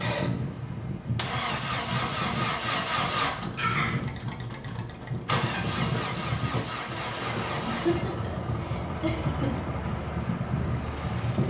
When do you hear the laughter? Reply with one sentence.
The laughter can be heard from 3.5 to 4.0 s and from 7.7 to 9.7 s.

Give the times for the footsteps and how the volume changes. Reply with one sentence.
The footsteps can't be heard in this clip.